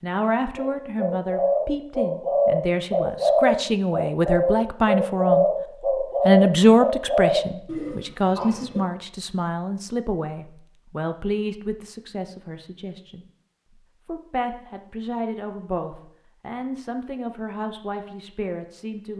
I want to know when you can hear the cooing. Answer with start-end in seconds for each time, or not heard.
0.6-8.8.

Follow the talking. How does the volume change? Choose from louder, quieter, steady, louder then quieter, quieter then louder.
louder then quieter.